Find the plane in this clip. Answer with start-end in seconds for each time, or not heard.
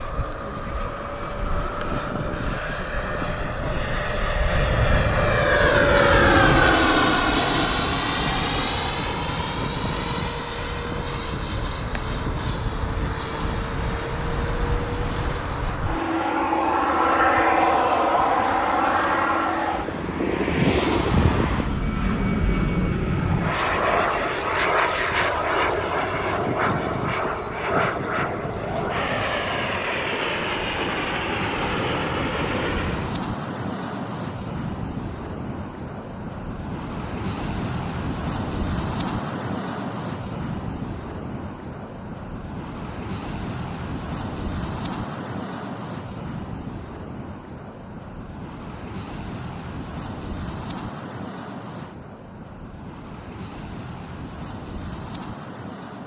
0.0-33.2.